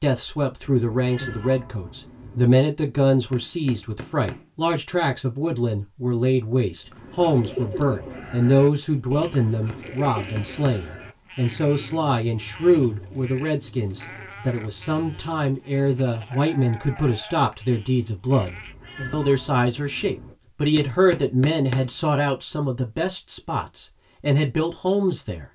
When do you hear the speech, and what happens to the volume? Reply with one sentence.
You can hear the speech from 0.0 to 25.4 s, at a steady volume.